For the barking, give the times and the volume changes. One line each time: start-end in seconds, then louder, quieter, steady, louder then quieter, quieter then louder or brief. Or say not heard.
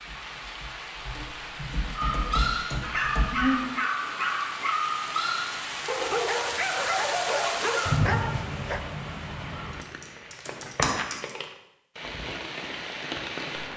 1.9-8.8 steady.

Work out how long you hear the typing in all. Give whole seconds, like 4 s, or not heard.
5 s.